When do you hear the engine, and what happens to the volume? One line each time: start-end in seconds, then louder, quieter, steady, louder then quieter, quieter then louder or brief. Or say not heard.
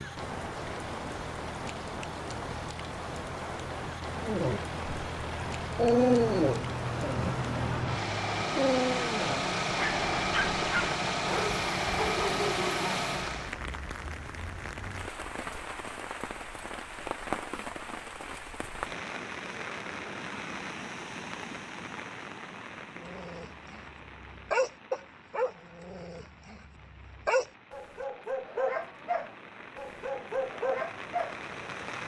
0.0-13.6 louder.